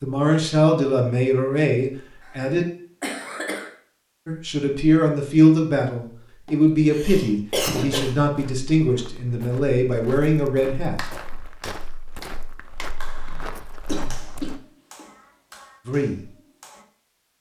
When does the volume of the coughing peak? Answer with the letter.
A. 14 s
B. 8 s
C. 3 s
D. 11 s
B.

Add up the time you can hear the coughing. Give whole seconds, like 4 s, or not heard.
5 s.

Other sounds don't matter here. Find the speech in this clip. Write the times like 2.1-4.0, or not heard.
0.0-2.6, 4.2-11.0, 15.8-16.3.